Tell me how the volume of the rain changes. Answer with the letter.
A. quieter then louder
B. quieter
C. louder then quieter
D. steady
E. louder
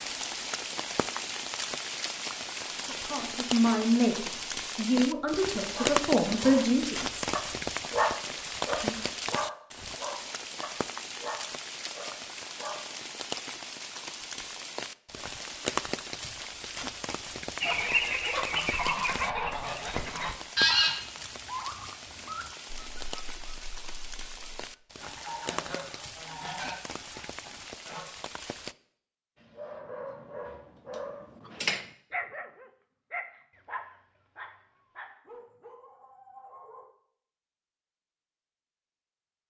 B.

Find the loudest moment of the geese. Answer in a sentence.
The volume of the geese peaks at 21 seconds.